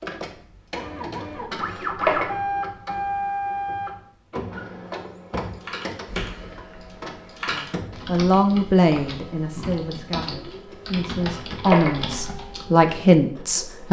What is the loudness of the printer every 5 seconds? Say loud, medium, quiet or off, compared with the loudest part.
loud, medium, quiet.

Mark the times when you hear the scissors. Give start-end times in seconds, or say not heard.
1.6-2.3, 11.2-12.1.